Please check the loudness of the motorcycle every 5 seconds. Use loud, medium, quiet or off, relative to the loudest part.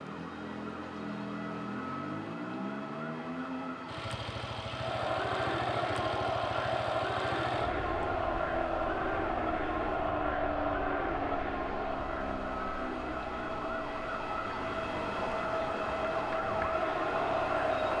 loud, loud, loud, medium.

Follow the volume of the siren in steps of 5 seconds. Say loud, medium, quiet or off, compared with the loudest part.
medium, medium, medium, loud.